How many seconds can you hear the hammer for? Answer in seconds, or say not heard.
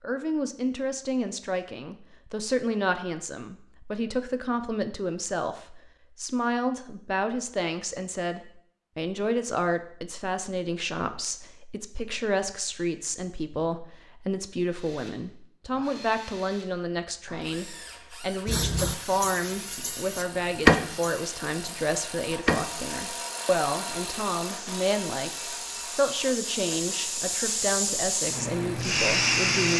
not heard.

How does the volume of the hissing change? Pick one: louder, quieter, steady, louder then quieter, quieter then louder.
quieter then louder.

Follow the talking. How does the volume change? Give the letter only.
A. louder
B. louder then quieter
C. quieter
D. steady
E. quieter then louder
D.